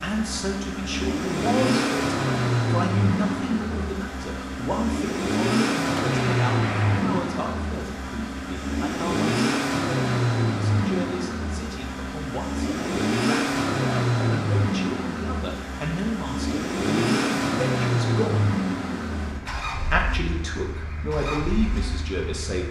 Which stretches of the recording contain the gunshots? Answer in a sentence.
You can hear the gunshots from 6.0 to 7.3 s.